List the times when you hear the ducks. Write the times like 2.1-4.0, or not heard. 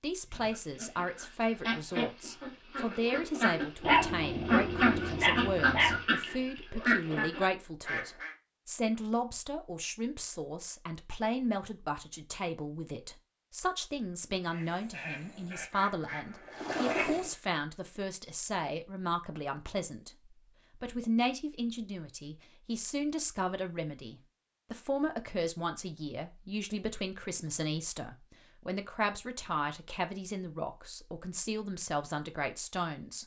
0.2-8.3, 14.5-17.3.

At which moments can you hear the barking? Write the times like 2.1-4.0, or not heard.
3.9-6.0.